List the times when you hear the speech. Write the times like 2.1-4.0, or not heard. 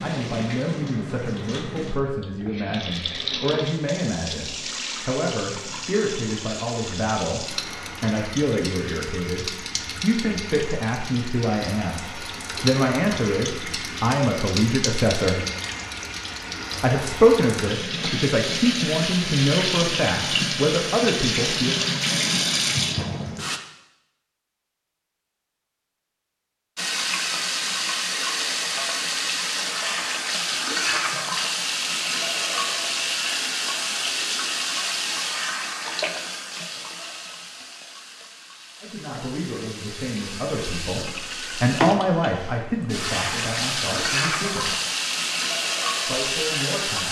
0.0-15.4, 16.8-21.8, 38.8-44.8, 46.0-47.0.